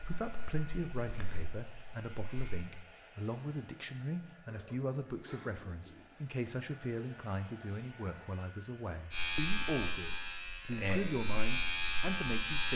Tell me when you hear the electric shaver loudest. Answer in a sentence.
The volume of the electric shaver peaks at 12 seconds.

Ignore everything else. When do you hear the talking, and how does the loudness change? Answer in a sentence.
The talking can be heard from 0.0 to 12.7 s, at a steady volume.